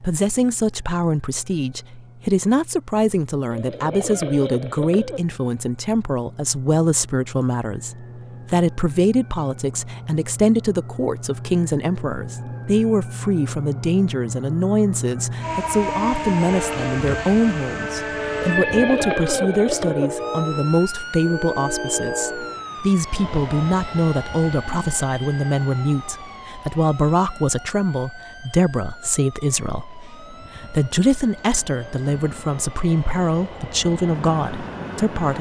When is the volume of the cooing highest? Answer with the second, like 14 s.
19 s.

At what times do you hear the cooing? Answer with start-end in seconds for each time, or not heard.
3.5-5.2, 18.4-20.1.